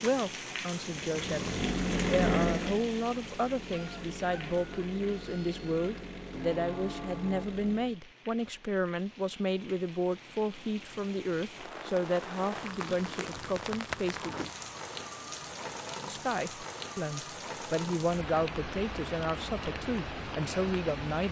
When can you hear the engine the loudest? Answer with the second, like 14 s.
2 s.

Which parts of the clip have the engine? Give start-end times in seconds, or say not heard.
0.0-8.0.